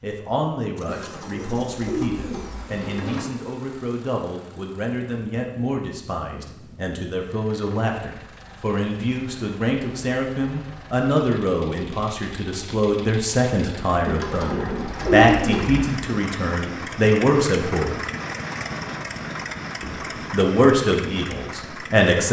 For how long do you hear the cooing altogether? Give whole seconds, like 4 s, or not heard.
4 s.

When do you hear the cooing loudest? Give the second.
15 s.